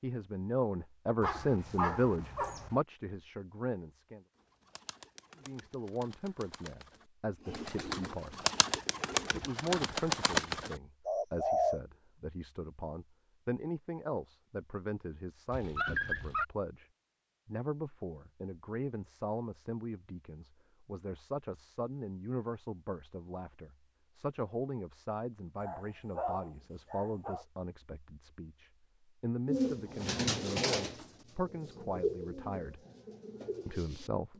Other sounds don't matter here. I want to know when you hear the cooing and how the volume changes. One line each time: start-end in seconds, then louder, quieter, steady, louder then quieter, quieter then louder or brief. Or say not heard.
4.3-11.8 louder
29.4-34.3 quieter.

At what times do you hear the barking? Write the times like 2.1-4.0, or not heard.
1.2-2.8, 15.5-16.4, 25.6-27.4.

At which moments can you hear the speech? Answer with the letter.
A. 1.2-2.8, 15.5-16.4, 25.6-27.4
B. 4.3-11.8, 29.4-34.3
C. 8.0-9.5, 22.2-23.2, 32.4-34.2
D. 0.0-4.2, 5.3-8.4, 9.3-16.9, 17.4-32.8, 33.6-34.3
D.